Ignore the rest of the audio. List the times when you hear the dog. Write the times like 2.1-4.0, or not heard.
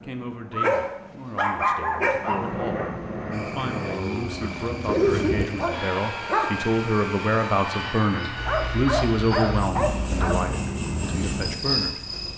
0.5-2.5, 4.4-6.5, 8.3-10.4.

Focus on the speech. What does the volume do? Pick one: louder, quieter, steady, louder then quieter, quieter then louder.
louder then quieter.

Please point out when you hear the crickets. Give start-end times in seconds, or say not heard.
3.3-12.3.